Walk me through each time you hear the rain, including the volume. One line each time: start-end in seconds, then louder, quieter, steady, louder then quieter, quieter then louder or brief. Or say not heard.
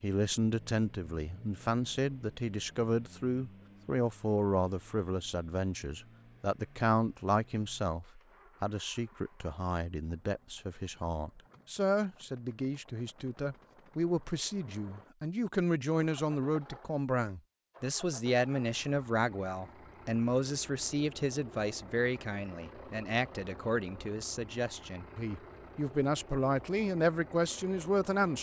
not heard.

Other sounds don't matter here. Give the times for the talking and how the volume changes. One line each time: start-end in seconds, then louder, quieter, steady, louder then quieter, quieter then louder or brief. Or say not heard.
0.0-28.3 steady.